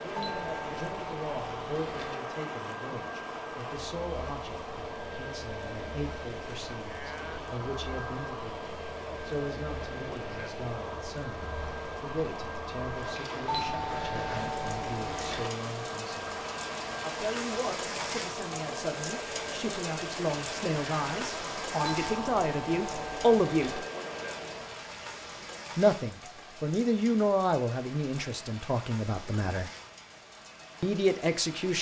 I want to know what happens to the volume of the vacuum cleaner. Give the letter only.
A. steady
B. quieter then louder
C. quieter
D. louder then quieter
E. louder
A.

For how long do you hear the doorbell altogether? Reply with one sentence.
You can hear the doorbell for 6 seconds altogether.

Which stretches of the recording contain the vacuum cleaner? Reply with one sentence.
The vacuum cleaner can be heard from 0.0 to 24.9 s.